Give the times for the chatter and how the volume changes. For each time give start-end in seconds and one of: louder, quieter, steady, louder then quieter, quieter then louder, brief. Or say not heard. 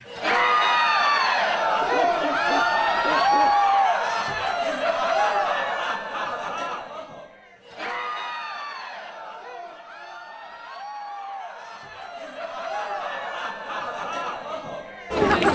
0.1-15.4 quieter then louder.